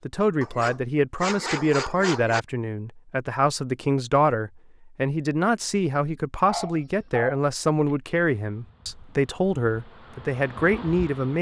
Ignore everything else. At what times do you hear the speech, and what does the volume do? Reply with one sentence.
You can hear the speech from 0.1 to 11.3 s, at a steady volume.